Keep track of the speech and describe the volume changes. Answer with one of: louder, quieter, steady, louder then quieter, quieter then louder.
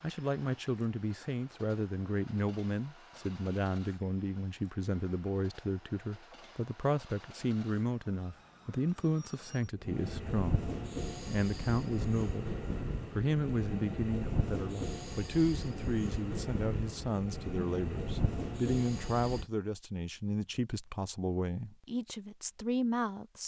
steady.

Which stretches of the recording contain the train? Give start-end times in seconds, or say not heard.
0.0-19.5.